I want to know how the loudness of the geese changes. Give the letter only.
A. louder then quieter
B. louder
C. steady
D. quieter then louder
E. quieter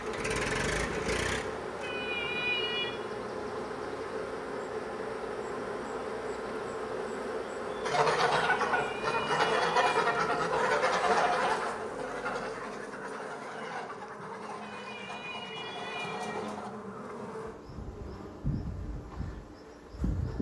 E.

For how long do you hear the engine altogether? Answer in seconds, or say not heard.
2 s.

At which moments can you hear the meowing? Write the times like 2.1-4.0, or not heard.
1.8-3.0, 8.7-10.4, 14.6-16.6.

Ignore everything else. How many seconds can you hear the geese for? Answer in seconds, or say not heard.
9 s.